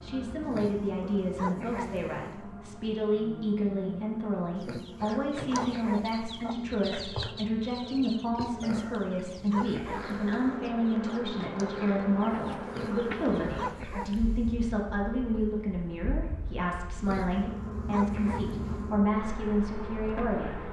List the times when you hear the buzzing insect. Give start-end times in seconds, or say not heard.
0.0-20.6.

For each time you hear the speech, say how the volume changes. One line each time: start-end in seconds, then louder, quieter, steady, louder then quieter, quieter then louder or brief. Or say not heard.
0.0-20.6 steady.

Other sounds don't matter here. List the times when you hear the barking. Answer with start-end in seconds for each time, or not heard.
0.5-2.4, 4.5-6.4, 8.6-10.4, 12.7-14.5, 17.0-18.9.